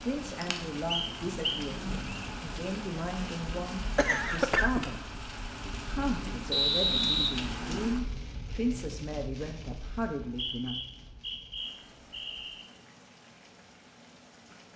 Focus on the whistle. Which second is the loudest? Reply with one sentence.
The loudest moment of the whistle is at 7 seconds.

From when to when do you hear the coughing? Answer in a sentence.
The coughing can be heard from 4.0 to 4.9 s.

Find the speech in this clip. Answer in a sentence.
The speech can be heard from 0.0 to 5.2 s and from 5.9 to 10.8 s.